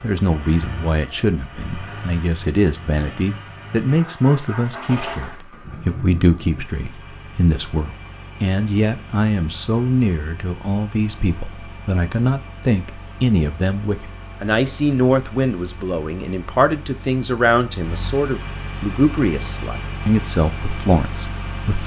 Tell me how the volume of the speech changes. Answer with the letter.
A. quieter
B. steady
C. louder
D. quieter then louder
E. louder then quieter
B.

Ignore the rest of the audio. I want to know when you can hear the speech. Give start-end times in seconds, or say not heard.
0.0-21.8.